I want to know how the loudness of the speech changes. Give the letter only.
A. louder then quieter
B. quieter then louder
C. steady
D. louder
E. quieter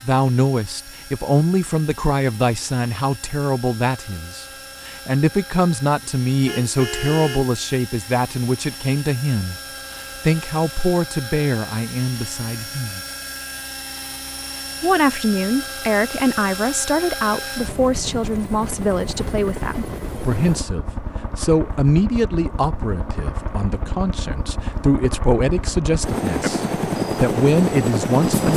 C.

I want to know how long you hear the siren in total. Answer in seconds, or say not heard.
not heard.